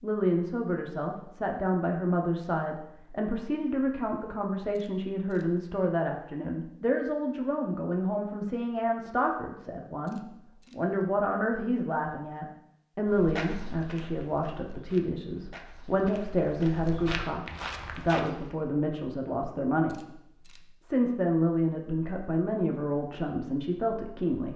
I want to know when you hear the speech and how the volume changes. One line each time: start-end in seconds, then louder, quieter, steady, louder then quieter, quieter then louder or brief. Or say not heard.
0.0-24.5 steady.